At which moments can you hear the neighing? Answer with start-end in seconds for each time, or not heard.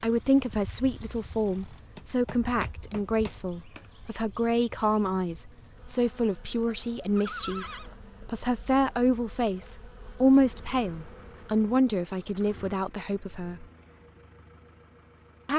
7.2-7.9.